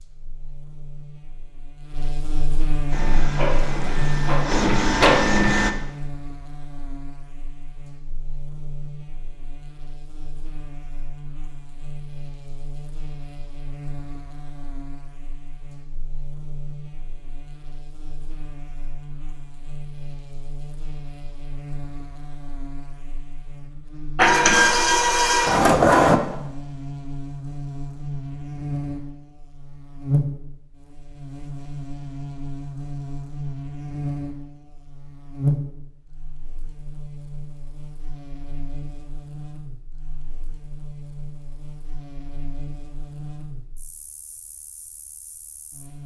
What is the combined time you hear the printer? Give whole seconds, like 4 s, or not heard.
5 s.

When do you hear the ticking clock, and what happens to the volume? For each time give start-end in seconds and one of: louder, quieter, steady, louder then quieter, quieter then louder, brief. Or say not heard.
not heard.